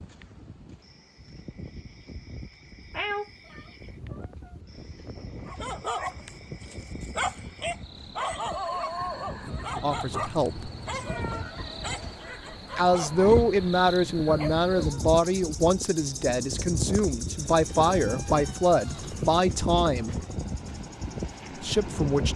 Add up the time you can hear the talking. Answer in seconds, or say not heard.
9 s.